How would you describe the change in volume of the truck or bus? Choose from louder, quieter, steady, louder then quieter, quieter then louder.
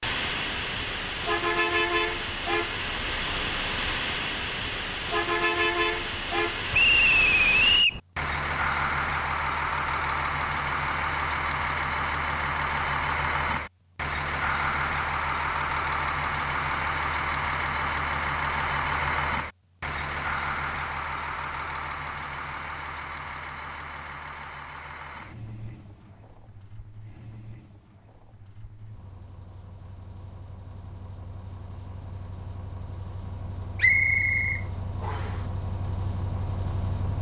quieter.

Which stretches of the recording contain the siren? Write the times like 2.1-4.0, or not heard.
not heard.